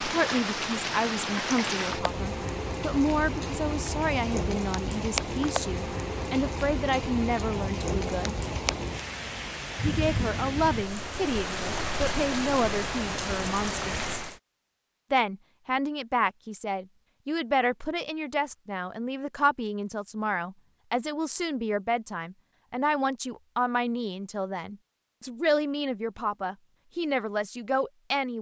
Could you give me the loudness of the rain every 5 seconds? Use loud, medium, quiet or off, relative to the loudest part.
loud, loud, loud, off, off, off.